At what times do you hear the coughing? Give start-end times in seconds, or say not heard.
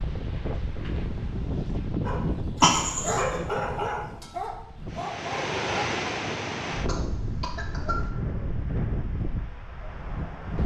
2.6-3.2, 6.8-8.1.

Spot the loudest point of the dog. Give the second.
3 s.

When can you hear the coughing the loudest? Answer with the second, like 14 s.
3 s.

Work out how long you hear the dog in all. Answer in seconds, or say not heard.
4 s.